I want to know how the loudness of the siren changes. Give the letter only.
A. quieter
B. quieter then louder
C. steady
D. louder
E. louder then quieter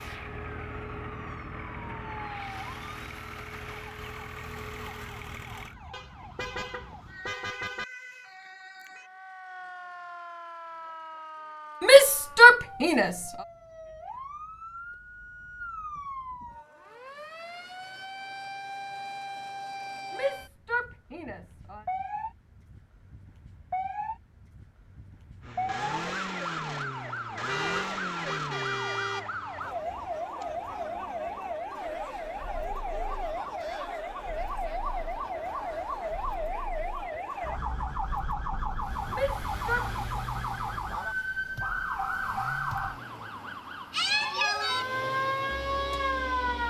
D.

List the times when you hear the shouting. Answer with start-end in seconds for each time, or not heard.
11.8-13.2, 20.1-21.9, 39.1-39.9.